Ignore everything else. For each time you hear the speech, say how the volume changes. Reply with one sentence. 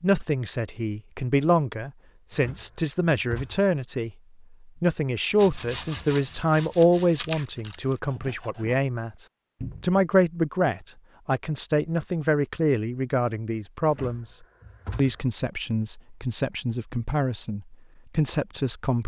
You can hear the speech from 0.0 to 14.3 s, at a steady volume; and from 14.9 to 19.0 s, getting quieter then louder.